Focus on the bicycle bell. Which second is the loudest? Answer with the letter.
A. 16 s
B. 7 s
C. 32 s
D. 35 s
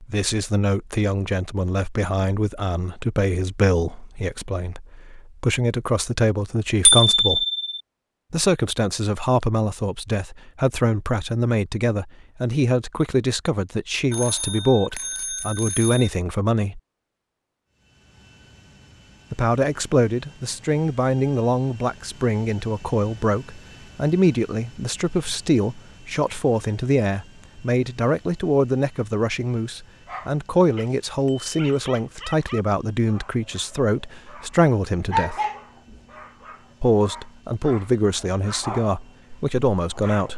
B.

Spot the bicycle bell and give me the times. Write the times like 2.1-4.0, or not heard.
6.8-7.8, 14.1-16.1, 31.2-31.8.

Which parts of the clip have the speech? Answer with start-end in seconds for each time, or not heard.
0.0-7.5, 8.3-16.8, 19.3-35.4, 36.8-40.3.